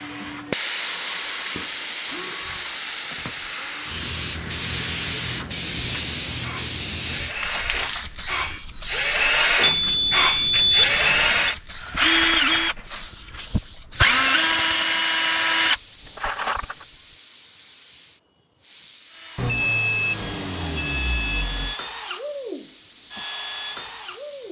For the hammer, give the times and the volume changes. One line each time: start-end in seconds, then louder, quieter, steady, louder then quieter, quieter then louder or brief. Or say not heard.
not heard.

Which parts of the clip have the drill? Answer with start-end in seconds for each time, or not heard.
0.0-16.9, 19.1-24.4.